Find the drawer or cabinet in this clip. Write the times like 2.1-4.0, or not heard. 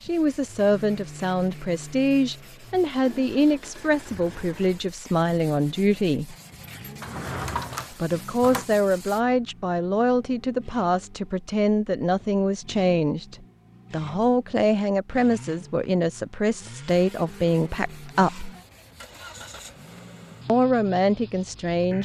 7.0-8.7.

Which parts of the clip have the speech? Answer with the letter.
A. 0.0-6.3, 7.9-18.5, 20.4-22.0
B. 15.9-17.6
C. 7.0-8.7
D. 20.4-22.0
A.